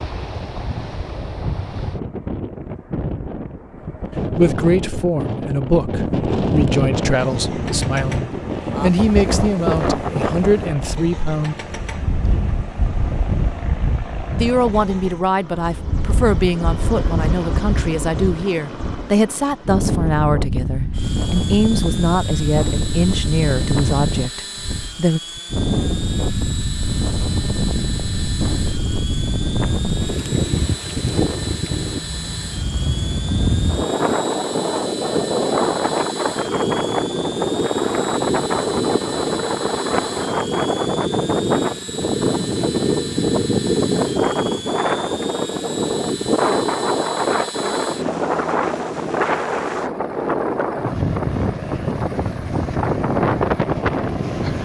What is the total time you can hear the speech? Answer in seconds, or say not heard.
18 s.